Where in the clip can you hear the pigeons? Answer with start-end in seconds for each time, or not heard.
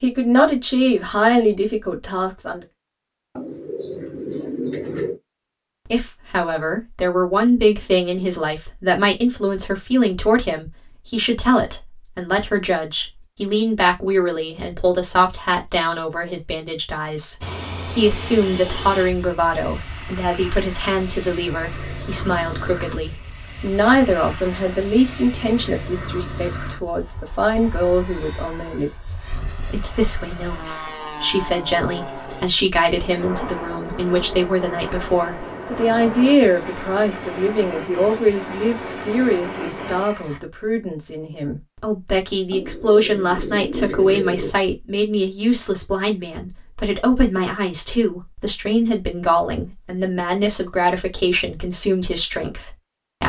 3.4-5.2, 42.5-44.5.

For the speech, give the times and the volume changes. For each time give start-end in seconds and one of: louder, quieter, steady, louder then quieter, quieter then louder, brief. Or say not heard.
0.0-2.6 brief
5.9-53.2 steady.